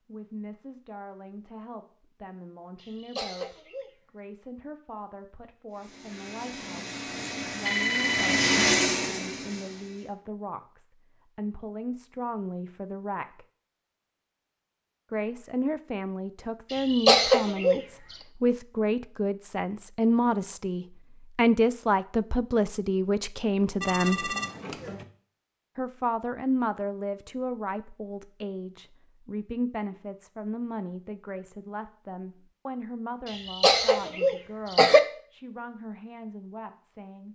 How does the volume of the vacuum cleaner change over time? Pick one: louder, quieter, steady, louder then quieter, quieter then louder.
louder then quieter.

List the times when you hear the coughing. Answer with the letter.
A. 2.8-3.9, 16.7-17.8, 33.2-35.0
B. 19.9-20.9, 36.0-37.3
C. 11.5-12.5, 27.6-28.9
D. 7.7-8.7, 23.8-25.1
A.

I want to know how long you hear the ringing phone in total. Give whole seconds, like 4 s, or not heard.
2 s.